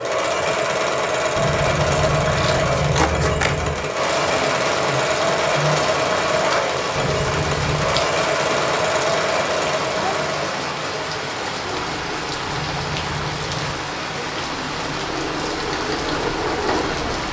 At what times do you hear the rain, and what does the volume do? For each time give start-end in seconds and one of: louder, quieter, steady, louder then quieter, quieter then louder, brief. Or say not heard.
4.0-17.2 steady.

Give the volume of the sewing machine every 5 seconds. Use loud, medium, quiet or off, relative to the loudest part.
loud, loud, medium, medium.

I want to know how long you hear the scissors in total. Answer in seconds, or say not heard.
5 s.